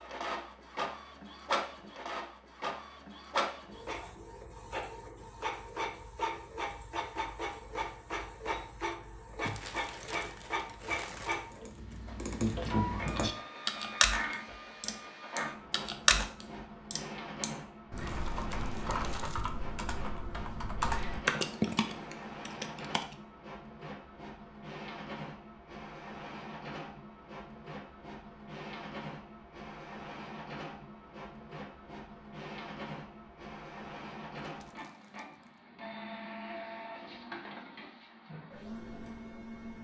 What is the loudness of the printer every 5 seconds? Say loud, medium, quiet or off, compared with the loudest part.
loud, loud, loud, medium, medium, medium, medium, medium.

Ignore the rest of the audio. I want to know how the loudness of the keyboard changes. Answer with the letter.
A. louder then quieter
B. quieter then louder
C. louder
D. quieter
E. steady
B.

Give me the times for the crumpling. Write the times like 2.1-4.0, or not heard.
9.4-11.3, 18.1-19.5, 34.5-35.6.